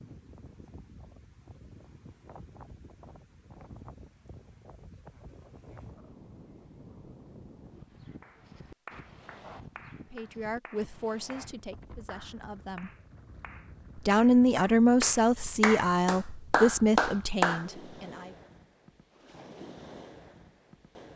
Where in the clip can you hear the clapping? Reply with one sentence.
The clapping can be heard from 8.2 to 17.6 s.